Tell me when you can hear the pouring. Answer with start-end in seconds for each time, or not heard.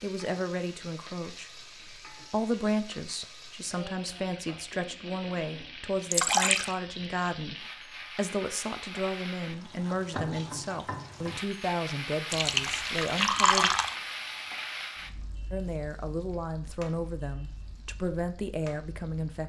6.1-6.8, 12.3-13.9.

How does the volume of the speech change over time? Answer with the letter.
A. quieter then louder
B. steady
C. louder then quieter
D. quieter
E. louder
B.